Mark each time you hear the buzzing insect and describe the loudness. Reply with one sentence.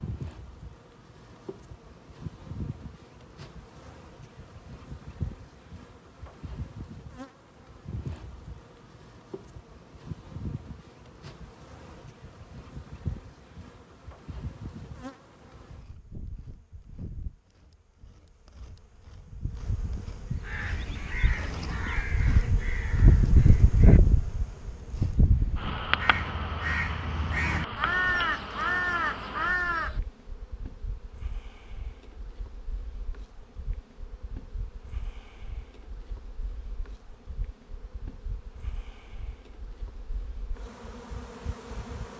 You can hear the buzzing insect from 0.0 to 42.1 s, getting louder then quieter.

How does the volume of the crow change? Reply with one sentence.
The volume of the crow goes down, then up.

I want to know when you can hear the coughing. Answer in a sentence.
You can't hear the coughing here.